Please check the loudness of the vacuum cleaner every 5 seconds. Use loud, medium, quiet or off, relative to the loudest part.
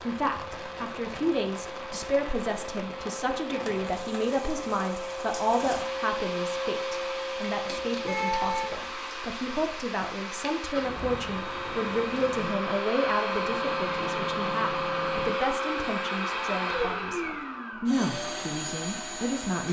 medium, loud, loud, loud.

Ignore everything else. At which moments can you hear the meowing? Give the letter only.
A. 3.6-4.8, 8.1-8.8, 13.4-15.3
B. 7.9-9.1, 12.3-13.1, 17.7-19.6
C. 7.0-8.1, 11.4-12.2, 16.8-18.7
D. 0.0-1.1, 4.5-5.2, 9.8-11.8
A.